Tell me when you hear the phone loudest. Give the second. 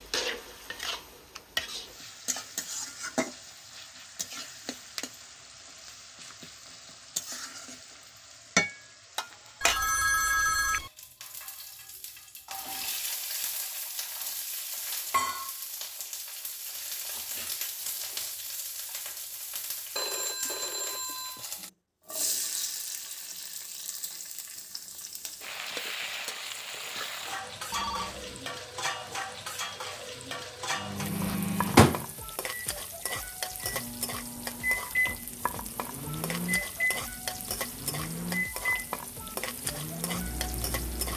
10 s.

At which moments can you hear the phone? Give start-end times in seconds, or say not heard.
9.6-10.9, 19.9-21.4, 27.7-28.4.